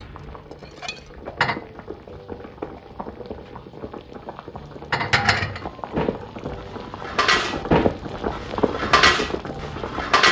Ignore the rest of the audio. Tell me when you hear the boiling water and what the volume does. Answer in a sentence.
You can hear the boiling water from 0.0 to 10.2 s, getting louder.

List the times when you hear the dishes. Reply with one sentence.
The dishes can be heard from 0.0 to 1.6 s and from 4.9 to 10.2 s.